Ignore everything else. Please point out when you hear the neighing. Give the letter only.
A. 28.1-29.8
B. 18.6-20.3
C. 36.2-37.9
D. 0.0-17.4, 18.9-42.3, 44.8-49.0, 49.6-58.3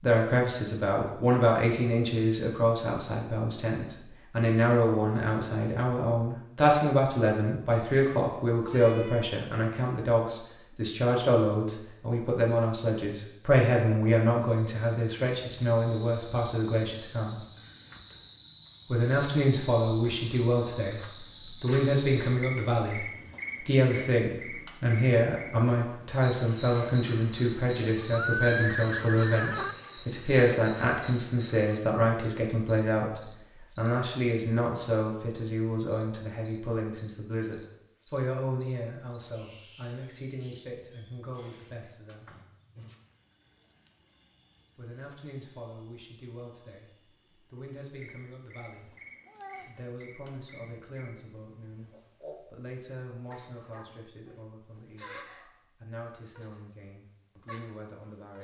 A.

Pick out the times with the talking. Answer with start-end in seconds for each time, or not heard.
0.0-17.4, 18.9-42.3, 44.8-49.0, 49.6-58.3.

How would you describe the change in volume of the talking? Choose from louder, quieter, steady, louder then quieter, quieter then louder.
quieter.